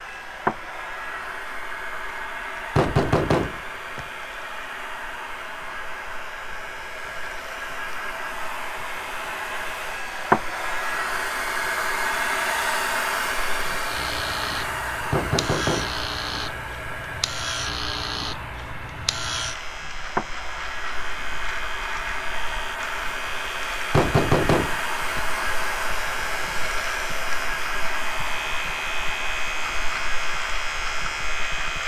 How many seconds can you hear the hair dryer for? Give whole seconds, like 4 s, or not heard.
32 s.